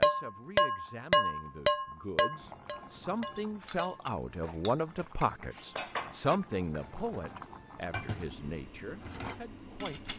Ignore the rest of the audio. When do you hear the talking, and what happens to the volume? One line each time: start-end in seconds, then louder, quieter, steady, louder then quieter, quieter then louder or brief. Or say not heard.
0.0-10.1 louder then quieter.